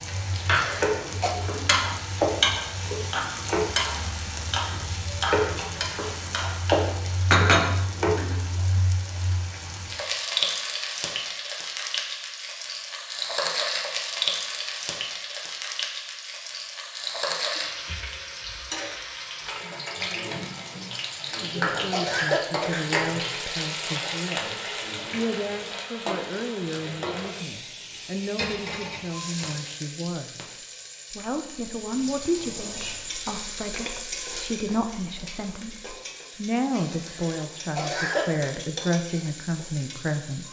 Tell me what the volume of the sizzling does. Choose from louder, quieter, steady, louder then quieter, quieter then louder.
quieter.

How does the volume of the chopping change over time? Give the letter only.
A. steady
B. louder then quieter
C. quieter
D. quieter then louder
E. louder
D.